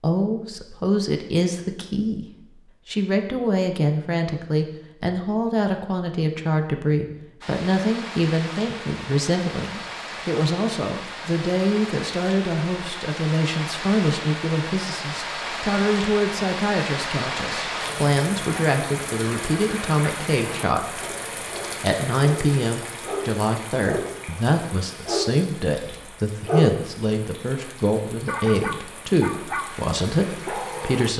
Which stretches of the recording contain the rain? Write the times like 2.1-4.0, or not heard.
7.4-31.1.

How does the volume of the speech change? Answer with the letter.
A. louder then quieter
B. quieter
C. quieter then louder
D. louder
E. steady
E.